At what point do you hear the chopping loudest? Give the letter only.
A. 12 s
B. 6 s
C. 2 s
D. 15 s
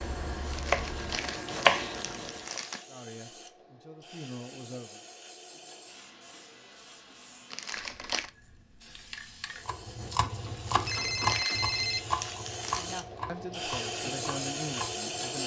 C.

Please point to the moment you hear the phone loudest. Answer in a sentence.
The loudest moment of the phone is at 12 seconds.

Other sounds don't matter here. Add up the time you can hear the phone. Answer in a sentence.
The phone can be heard for 2 seconds in total.